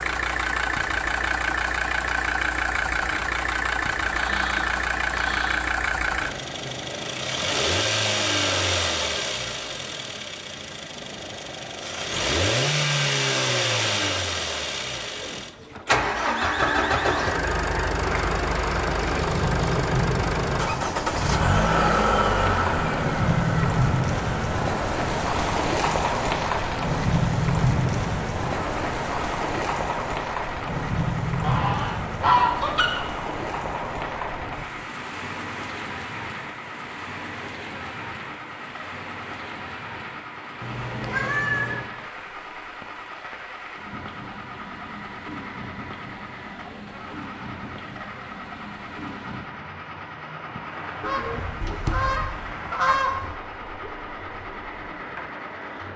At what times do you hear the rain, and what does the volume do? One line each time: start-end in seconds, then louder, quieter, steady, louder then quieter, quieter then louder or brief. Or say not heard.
18.0-55.9 quieter.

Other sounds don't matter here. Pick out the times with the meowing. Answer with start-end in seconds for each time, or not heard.
40.6-41.9.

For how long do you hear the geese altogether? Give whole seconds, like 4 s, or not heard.
7 s.